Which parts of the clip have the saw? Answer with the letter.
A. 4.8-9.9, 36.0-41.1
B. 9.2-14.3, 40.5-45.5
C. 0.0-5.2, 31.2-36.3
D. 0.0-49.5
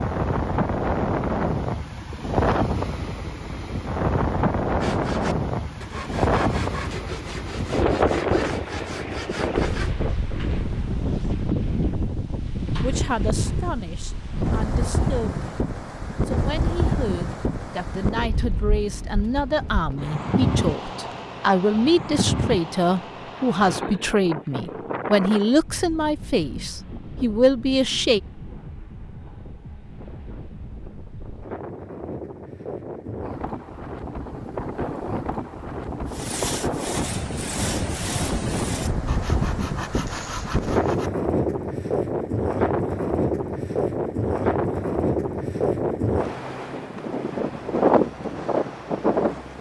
A.